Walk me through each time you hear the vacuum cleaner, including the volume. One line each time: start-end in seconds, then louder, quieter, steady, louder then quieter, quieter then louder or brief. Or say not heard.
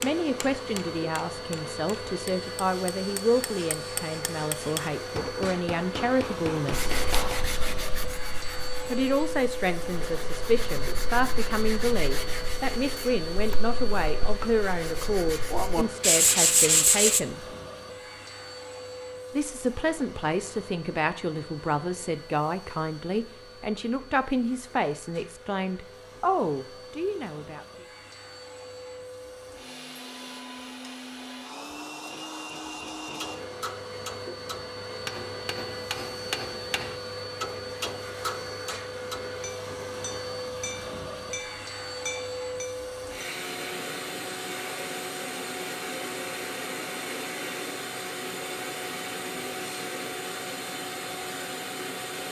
0.0-52.2 quieter then louder.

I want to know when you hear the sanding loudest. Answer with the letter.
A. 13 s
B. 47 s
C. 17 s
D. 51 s
C.